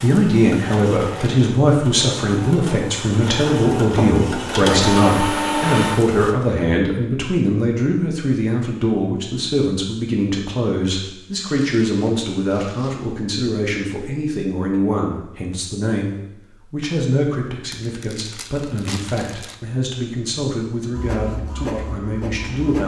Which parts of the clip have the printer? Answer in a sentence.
You can hear the printer from 0.0 to 6.3 s and from 20.9 to 22.8 s.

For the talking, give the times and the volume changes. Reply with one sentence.
You can hear the talking from 0.0 to 22.8 s, getting quieter.